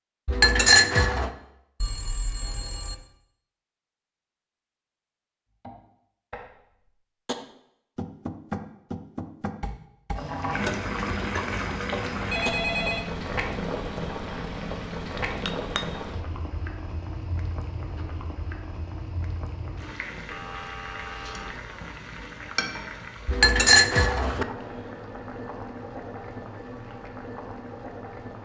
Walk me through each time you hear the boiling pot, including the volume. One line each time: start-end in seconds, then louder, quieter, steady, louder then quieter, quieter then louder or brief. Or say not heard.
10.2-28.4 quieter.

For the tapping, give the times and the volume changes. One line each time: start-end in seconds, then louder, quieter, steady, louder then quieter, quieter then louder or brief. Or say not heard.
5.6-12.6 louder.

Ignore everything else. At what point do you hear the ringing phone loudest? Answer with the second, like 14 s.
13 s.